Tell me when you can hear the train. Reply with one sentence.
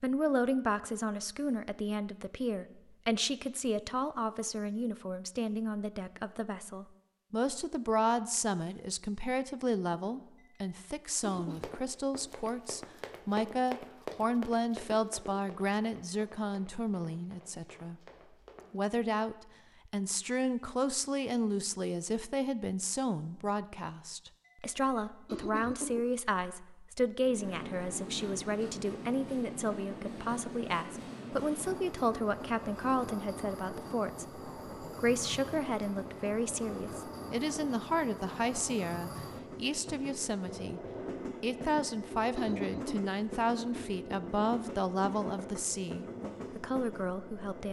The train can be heard from 27.2 to 47.6 s.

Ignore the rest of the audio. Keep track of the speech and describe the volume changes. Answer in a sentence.
The volume of the speech stays about the same.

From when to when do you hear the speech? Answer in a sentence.
The speech can be heard from 0.0 to 18.0 s, from 18.7 to 40.8 s and from 41.4 to 47.6 s.